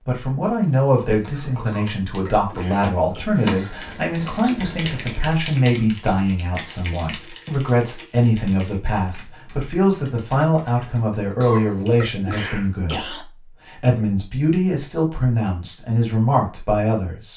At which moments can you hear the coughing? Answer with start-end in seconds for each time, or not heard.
1.4-3.2, 11.2-13.2.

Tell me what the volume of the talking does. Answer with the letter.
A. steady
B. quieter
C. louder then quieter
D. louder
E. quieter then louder
A.